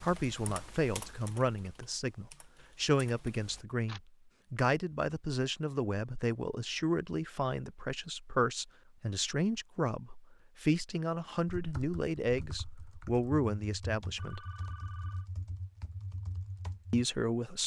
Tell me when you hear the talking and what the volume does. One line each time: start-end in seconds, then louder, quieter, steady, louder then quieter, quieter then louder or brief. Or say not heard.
0.0-14.4 steady
16.9-17.6 brief.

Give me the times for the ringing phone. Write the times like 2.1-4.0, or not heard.
14.2-15.3.